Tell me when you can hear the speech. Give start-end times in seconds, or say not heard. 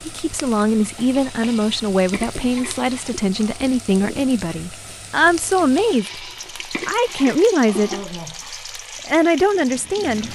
0.1-8.0, 9.1-10.3.